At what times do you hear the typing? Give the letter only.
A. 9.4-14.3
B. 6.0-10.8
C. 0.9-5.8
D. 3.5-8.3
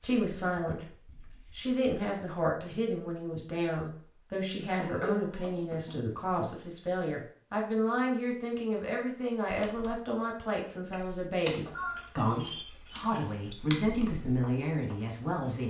A.